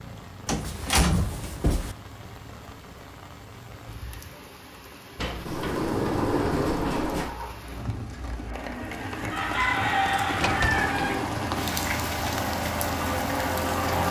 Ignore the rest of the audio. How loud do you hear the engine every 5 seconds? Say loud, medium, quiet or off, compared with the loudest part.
off, medium, loud.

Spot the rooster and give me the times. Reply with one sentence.
You can hear the rooster from 9.3 to 11.2 s.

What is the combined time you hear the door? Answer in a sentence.
The door can be heard for 5 seconds in total.